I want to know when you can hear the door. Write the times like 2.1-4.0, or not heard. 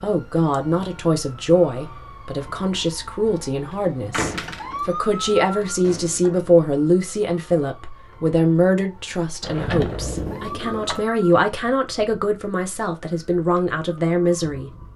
4.1-4.9, 9.4-11.1.